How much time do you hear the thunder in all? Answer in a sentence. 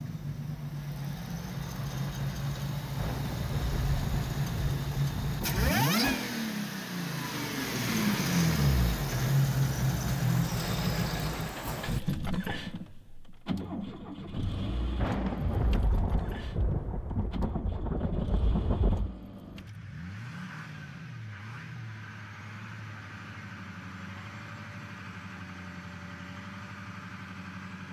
The thunder can be heard for 7 seconds in total.